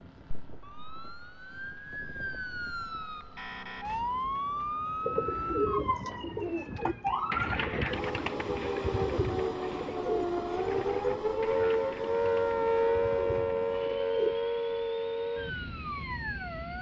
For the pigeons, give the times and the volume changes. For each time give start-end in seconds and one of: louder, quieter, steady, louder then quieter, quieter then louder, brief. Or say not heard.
5.0-14.3 quieter.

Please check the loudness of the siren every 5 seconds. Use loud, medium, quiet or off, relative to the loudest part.
medium, medium, loud, medium.